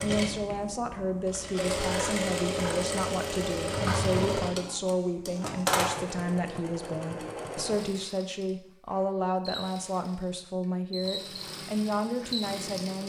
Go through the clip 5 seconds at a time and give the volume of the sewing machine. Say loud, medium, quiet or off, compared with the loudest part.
loud, loud, medium.